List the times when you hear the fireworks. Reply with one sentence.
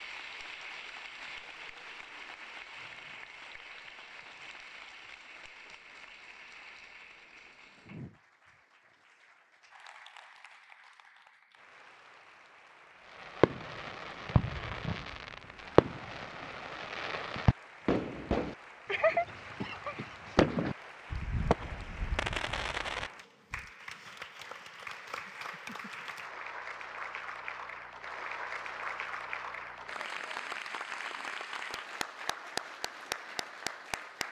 You can hear the fireworks from 13.2 to 23.6 s.